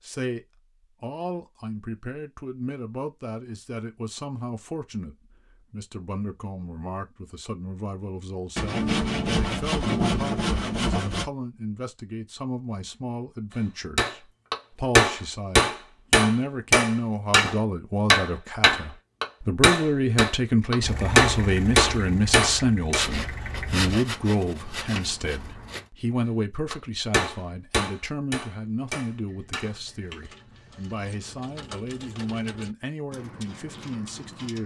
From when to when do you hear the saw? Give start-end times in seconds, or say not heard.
8.6-11.3, 22.9-25.9.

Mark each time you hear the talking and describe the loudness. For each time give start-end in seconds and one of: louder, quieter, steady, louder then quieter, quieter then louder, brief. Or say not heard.
0.0-34.6 louder then quieter.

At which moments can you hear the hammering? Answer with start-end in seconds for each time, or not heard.
13.9-23.1, 26.7-30.2.